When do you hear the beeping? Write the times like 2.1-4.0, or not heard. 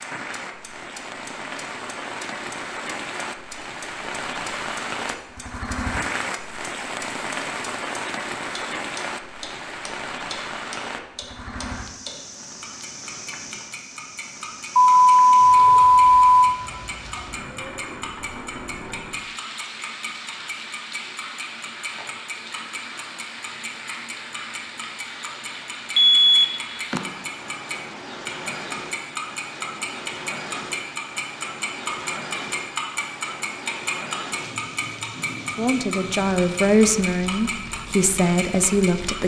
14.8-16.6, 25.9-27.0.